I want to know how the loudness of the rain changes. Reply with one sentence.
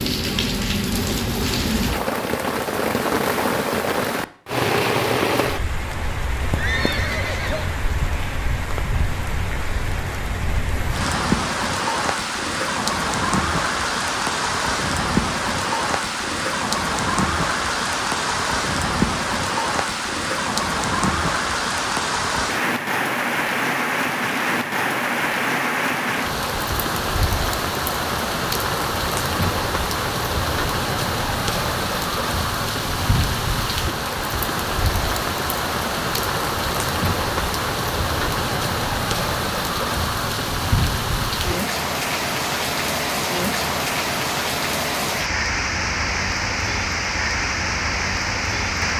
The volume of the rain stays about the same.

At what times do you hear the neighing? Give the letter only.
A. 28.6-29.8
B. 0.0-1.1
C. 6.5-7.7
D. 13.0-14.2
C.